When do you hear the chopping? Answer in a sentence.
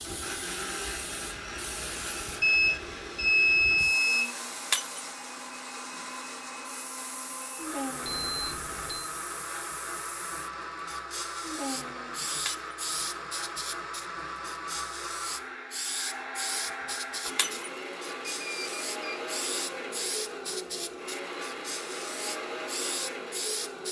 You can't hear the chopping here.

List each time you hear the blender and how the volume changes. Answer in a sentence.
The blender can be heard from 0.0 to 23.8 s, at a steady volume.